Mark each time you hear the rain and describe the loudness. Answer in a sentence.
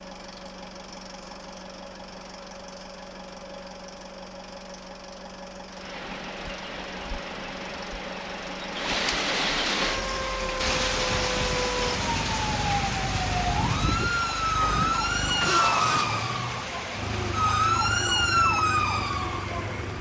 The rain can be heard from 5.7 to 19.9 s, getting louder then quieter.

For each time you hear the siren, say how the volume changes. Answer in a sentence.
You can hear the siren from 9.8 to 19.9 s, getting louder.